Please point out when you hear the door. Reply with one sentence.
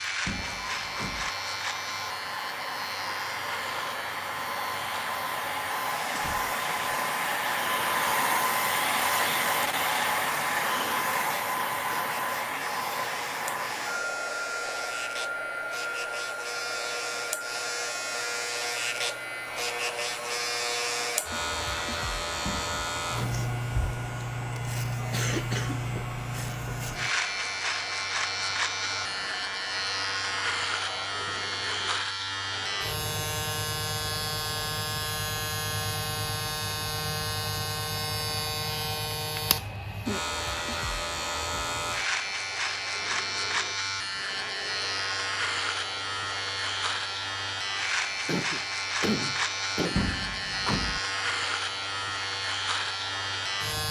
You can hear the door from 0.2 to 1.3 s, from 22.4 to 23.4 s and from 49.9 to 51.0 s.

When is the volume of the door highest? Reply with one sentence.
The loudest moment of the door is at 50 seconds.